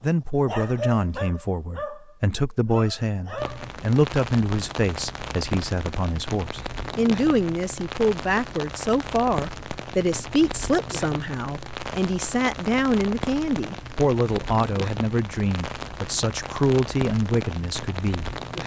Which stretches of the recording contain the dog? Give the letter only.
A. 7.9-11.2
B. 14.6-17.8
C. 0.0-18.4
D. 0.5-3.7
D.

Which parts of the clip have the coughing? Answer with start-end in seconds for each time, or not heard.
not heard.